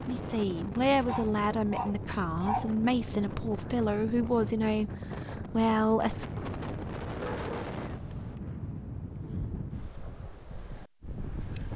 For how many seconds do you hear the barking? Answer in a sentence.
You can hear the barking for 4 seconds altogether.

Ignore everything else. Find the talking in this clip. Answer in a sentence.
You can hear the talking from 0.0 to 6.2 s.